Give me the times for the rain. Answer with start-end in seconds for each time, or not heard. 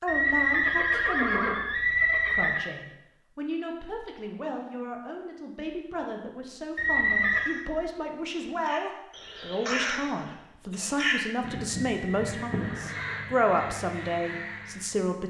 not heard.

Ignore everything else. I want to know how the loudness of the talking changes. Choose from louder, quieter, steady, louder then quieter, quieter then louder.
louder.